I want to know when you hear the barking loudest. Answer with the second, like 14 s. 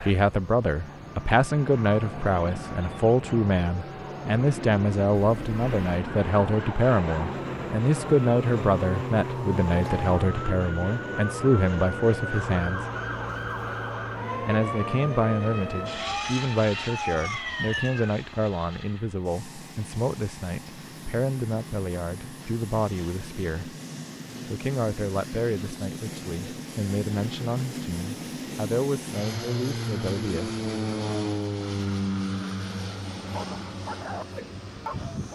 34 s.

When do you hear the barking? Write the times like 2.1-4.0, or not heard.
33.3-35.2.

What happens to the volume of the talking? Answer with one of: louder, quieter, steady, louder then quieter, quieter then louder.
quieter.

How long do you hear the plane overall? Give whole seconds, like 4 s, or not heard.
35 s.